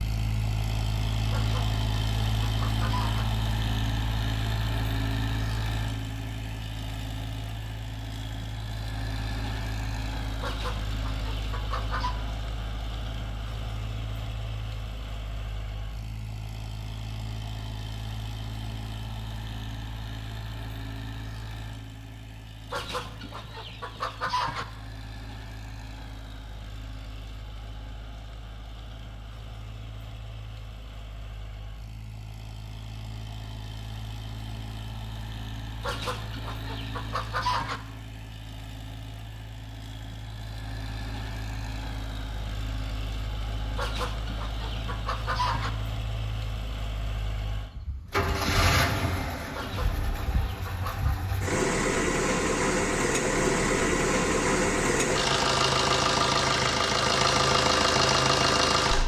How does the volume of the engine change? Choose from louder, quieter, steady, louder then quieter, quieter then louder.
quieter then louder.